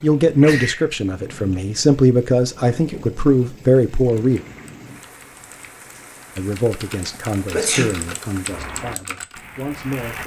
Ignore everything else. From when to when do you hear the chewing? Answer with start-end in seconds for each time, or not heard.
not heard.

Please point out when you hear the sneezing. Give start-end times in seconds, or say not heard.
0.2-0.9, 7.5-7.9.